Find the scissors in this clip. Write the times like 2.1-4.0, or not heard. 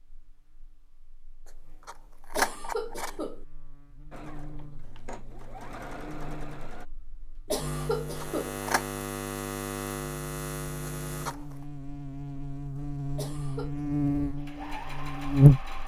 1.9-3.1, 8.2-8.8, 11.1-11.7.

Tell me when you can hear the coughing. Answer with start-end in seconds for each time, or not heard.
2.3-3.5, 7.5-8.6, 13.2-13.8.